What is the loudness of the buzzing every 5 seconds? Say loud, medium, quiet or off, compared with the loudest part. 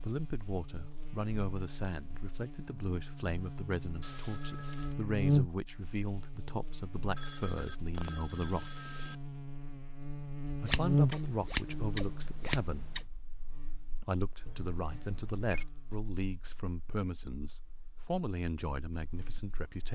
medium, loud, loud, quiet.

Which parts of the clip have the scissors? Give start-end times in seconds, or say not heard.
10.7-13.1.